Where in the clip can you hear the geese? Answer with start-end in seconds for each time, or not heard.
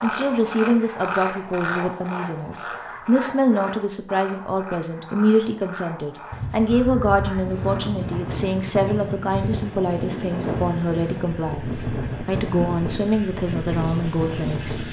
not heard.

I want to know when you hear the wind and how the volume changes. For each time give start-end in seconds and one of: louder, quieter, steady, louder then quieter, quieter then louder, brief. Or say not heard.
6.3-14.8 steady.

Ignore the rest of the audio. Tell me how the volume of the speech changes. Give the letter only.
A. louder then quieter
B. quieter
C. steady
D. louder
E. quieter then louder
C.